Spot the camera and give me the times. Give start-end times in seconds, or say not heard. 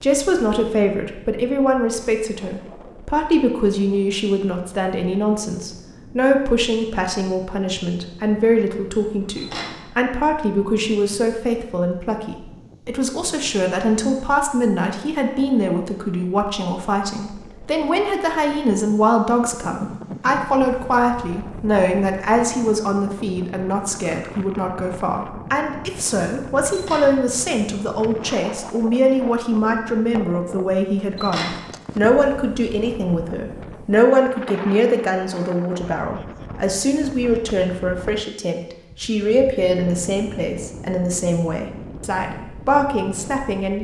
9.3-9.8, 26.7-27.1, 31.1-31.6.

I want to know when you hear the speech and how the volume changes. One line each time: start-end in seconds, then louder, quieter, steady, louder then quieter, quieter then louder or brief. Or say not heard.
0.0-43.8 steady.